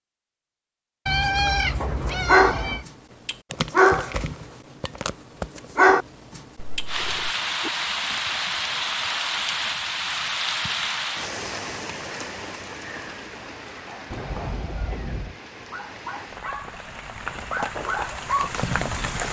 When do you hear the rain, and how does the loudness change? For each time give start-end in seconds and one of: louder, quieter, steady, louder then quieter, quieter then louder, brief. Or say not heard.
6.8-19.2 quieter then louder.